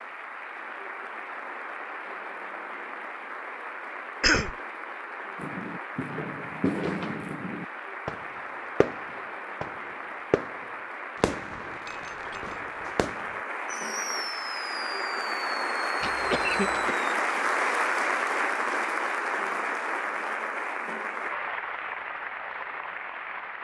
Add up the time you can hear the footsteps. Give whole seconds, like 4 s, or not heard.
not heard.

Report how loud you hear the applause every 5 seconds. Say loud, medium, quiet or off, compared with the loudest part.
medium, medium, medium, loud, medium.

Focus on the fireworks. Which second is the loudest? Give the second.
7 s.